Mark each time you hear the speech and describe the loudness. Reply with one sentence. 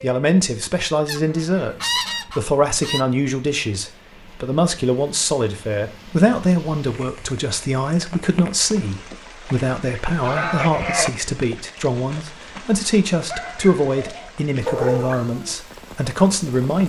You can hear the speech from 0.0 to 16.8 s, at a steady volume.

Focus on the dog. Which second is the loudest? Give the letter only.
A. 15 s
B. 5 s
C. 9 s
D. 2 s
A.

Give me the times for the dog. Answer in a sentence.
You can hear the dog from 13.3 to 15.2 s.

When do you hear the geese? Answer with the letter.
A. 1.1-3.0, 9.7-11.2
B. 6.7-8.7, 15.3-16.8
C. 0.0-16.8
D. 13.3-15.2
A.